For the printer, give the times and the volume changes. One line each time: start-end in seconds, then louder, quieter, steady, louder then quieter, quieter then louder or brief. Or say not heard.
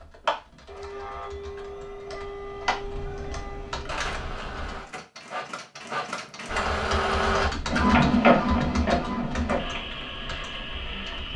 0.0-11.3 louder then quieter.